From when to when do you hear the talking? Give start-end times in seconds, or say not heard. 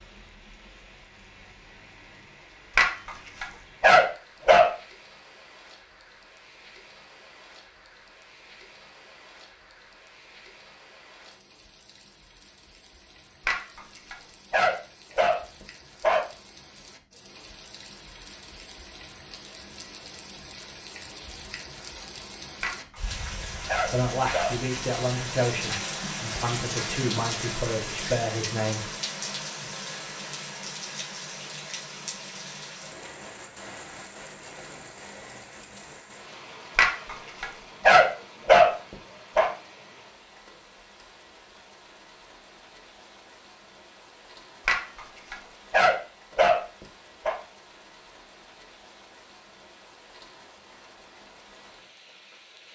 23.9-28.9.